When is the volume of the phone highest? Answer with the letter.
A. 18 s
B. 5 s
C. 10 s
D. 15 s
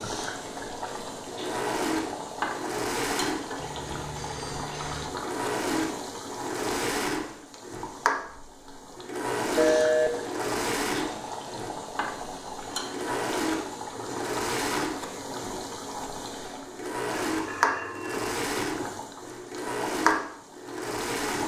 C.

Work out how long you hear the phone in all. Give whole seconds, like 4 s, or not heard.
4 s.